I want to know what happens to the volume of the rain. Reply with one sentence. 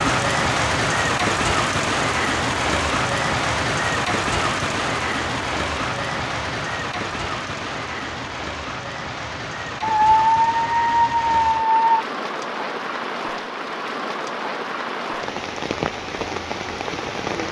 The volume of the rain goes down.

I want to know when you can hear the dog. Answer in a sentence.
You can hear the dog from 9.8 to 12.1 s.